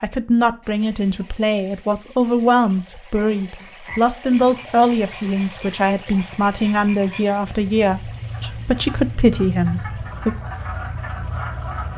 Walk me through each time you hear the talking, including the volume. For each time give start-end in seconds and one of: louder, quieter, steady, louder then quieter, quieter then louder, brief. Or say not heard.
0.0-10.3 steady.